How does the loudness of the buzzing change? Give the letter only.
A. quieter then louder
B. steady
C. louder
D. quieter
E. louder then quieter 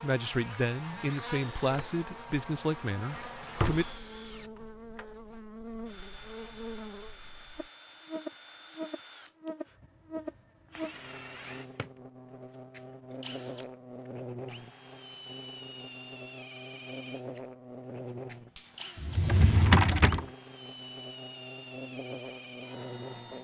B.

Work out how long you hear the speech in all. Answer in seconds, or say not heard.
4 s.